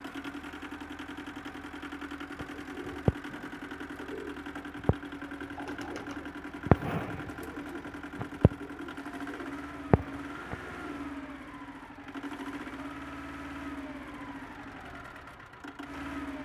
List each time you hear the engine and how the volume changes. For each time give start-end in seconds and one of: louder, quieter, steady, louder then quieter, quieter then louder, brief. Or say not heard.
0.0-16.4 steady.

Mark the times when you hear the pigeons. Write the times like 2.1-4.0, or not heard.
2.4-10.9.